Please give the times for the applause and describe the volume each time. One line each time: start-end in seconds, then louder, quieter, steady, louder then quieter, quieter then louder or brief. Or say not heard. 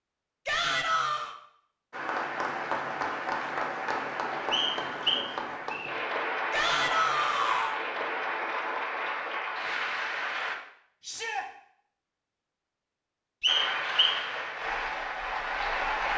1.9-10.6 steady
13.4-16.1 brief.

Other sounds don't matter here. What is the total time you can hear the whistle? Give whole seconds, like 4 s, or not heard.
2 s.